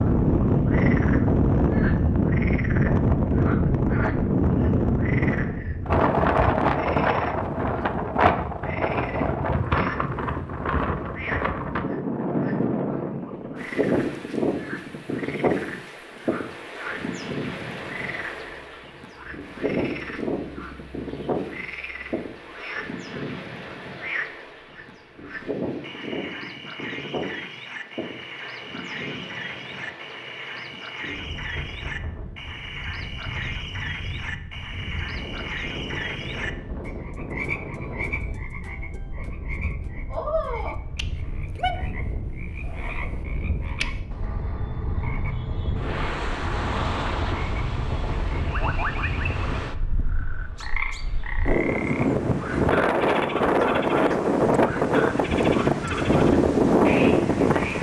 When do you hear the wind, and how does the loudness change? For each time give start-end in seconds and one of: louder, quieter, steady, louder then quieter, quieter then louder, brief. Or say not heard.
0.0-57.7 quieter then louder.